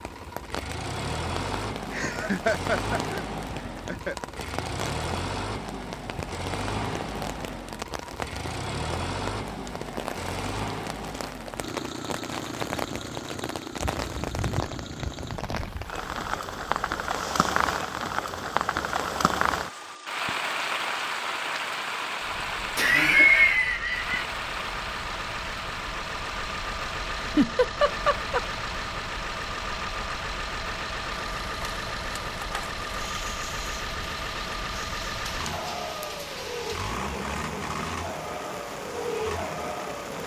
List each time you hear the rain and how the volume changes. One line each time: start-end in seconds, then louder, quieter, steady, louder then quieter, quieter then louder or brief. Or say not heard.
0.0-40.2 louder then quieter.